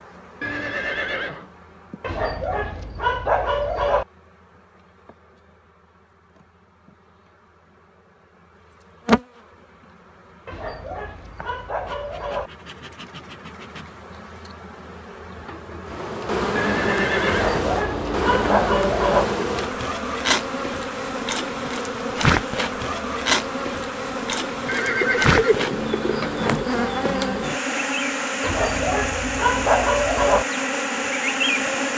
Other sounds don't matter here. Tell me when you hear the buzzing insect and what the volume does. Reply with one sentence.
The buzzing insect can be heard from 0.0 to 31.9 s, getting louder.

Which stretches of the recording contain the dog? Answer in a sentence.
You can hear the dog from 2.0 to 4.0 s, from 10.4 to 12.5 s, from 17.2 to 19.3 s and from 28.4 to 30.4 s.